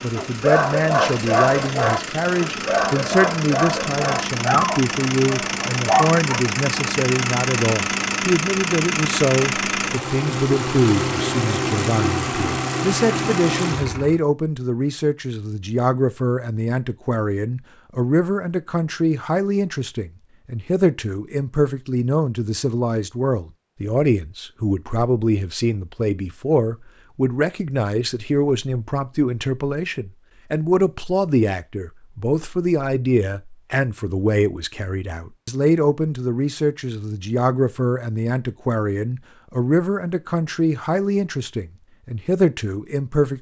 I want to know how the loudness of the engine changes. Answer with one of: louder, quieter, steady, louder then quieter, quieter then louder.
louder.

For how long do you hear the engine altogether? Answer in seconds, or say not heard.
14 s.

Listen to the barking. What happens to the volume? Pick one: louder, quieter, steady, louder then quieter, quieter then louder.
quieter.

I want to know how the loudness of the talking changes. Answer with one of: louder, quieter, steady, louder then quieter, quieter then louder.
steady.